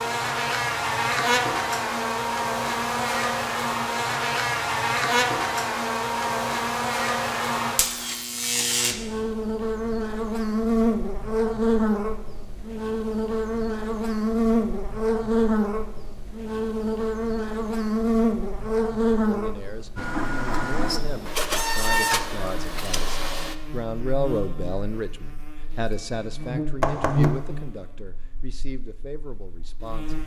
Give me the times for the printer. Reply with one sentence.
You can hear the printer from 19.9 to 23.6 s.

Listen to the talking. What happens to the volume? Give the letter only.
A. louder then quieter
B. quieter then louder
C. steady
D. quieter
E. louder
A.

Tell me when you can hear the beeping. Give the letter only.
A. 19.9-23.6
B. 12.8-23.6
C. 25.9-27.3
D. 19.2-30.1
C.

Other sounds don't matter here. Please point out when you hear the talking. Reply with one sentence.
The talking can be heard from 19.2 to 30.1 s.